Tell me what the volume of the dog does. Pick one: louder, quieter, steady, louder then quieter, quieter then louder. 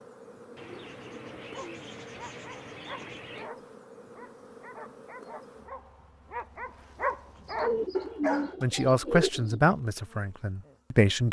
louder.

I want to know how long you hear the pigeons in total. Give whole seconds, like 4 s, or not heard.
5 s.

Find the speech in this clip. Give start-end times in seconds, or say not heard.
8.6-11.2.